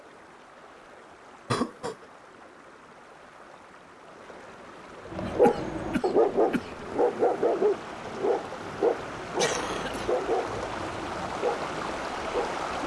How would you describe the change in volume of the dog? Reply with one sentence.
The volume of the dog goes down.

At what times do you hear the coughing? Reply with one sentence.
The coughing can be heard from 1.5 to 2.0 s, from 5.2 to 7.0 s and from 9.3 to 10.2 s.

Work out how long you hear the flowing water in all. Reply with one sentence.
You can hear the flowing water for 13 seconds altogether.